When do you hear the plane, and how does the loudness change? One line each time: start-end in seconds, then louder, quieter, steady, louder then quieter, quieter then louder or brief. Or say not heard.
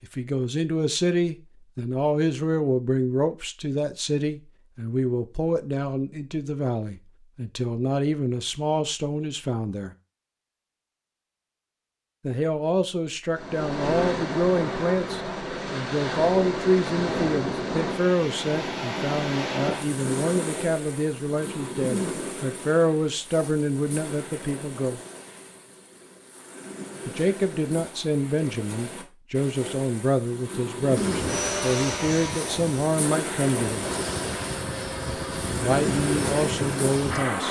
30.9-37.4 quieter then louder.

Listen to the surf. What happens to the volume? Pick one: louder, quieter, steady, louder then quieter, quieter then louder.
quieter then louder.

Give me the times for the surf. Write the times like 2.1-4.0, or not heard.
13.3-37.4.